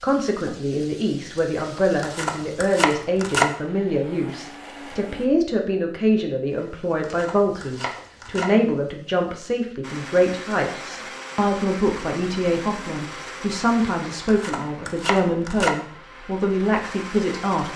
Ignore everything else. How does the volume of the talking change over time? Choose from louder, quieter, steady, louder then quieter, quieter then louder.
steady.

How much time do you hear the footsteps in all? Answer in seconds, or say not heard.
not heard.